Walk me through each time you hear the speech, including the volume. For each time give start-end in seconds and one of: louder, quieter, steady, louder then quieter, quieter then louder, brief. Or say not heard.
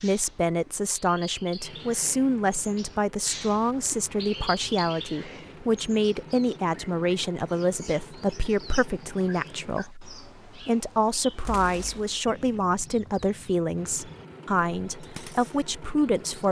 0.0-16.4 steady.